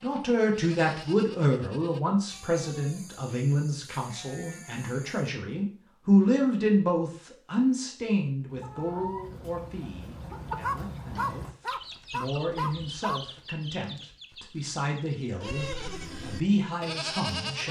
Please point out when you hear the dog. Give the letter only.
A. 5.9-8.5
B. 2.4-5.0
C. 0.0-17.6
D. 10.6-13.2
D.